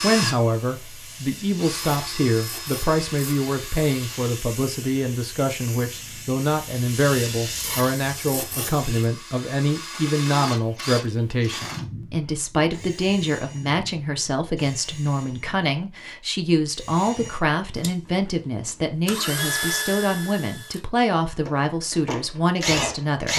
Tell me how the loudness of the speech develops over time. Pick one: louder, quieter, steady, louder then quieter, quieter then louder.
steady.